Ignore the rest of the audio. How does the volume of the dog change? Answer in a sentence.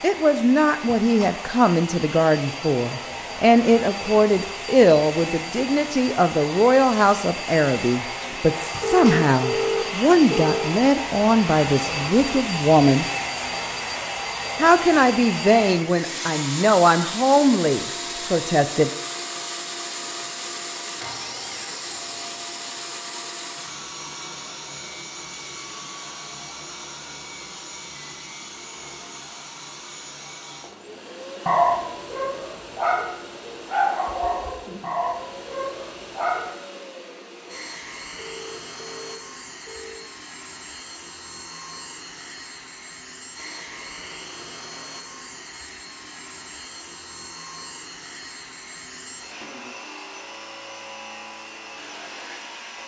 The loudness of the dog goes up, then down.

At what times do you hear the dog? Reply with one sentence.
The dog can be heard from 31.4 to 36.5 s.